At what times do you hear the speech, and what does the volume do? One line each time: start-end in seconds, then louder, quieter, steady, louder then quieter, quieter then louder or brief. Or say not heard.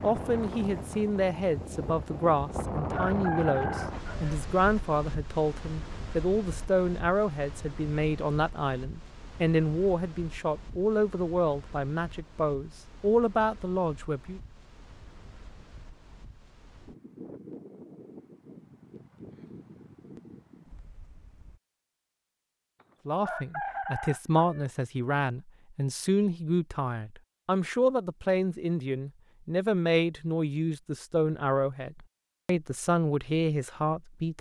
0.0-14.4 steady
23.1-34.3 steady.